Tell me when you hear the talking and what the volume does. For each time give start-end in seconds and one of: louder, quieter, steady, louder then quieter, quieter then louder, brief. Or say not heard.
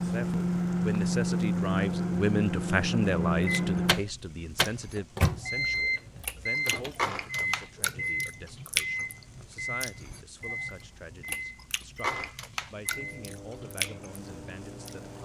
0.0-15.1 quieter.